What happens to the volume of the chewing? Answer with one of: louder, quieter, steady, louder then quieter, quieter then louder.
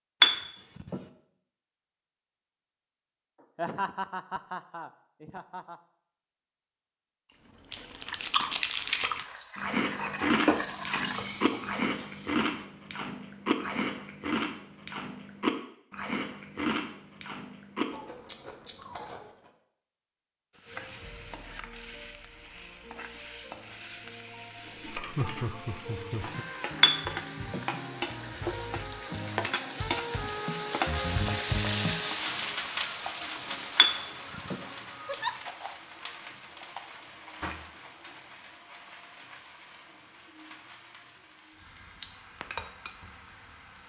quieter.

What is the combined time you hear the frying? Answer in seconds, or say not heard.
27 s.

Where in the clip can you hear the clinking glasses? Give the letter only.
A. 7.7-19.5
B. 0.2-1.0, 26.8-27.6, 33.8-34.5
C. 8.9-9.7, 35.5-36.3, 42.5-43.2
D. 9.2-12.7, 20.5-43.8
B.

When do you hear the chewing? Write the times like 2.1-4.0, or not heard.
7.7-19.5.